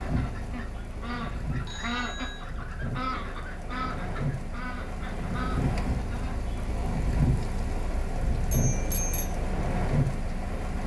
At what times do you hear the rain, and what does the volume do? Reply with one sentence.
The rain can be heard from 0.0 to 10.8 s, getting louder.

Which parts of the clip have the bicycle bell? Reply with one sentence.
You can hear the bicycle bell from 1.6 to 2.5 s and from 8.5 to 9.3 s.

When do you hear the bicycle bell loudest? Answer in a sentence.
The loudest moment of the bicycle bell is at 9 seconds.